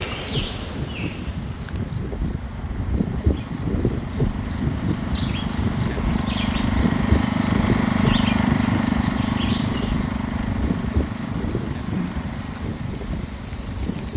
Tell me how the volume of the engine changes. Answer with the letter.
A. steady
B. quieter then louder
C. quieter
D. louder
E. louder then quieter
E.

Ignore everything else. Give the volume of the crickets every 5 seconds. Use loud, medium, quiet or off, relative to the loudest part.
medium, loud, loud.